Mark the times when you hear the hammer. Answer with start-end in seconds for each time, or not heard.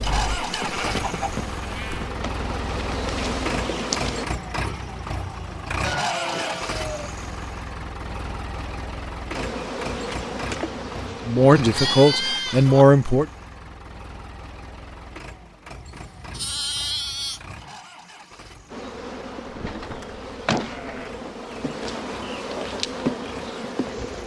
not heard.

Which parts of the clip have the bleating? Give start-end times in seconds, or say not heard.
0.3-2.1, 5.8-7.2, 11.4-12.8, 15.7-17.6, 19.4-21.1.